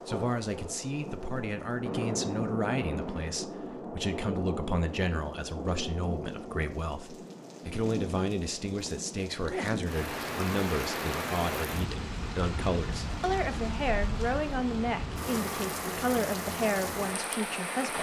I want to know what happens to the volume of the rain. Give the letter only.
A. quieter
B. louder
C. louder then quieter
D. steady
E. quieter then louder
D.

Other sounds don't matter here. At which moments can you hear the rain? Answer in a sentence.
You can hear the rain from 0.0 to 17.9 s.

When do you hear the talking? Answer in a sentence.
The talking can be heard from 0.1 to 17.9 s.